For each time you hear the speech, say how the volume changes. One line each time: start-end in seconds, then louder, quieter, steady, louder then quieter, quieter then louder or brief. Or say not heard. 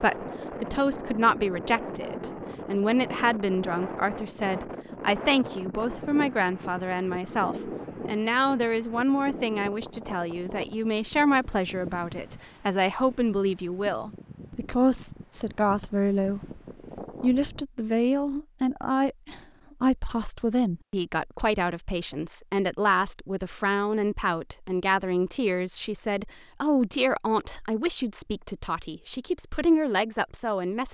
0.0-16.6 steady
17.2-30.8 steady.